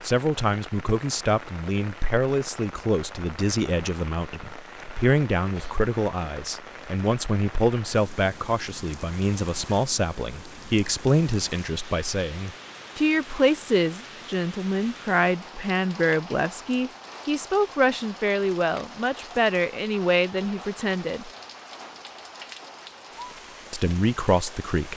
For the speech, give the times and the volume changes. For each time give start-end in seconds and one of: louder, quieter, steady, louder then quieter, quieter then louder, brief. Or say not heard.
0.0-21.3 steady
23.7-24.9 brief.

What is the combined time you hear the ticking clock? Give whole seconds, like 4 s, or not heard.
not heard.